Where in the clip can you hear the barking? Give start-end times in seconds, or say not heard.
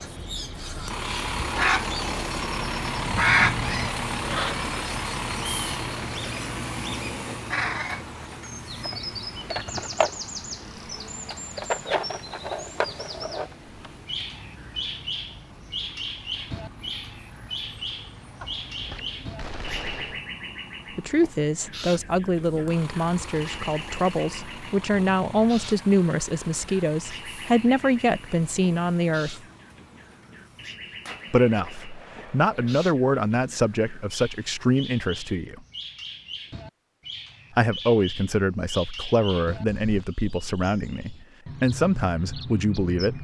not heard.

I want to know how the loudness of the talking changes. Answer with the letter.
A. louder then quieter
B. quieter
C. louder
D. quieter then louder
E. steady
E.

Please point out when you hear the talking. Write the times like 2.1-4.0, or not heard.
20.9-29.4, 31.3-35.6, 37.5-43.1.